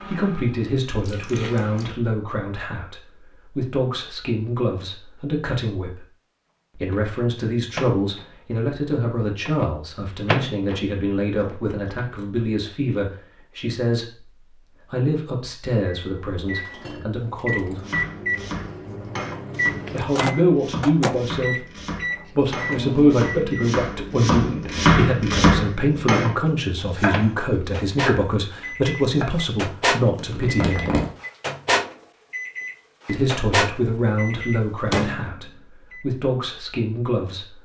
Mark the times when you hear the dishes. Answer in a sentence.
The dishes can't be heard in this clip.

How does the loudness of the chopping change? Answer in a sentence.
The loudness of the chopping goes up, then down.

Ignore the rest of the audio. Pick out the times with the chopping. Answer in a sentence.
You can hear the chopping from 17.8 to 29.4 s.